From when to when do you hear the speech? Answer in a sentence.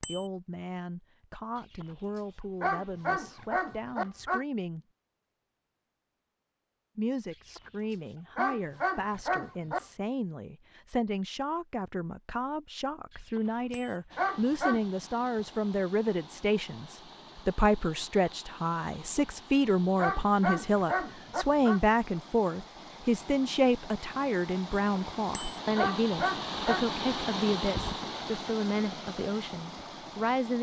You can hear the speech from 0.0 to 4.8 s and from 7.0 to 30.5 s.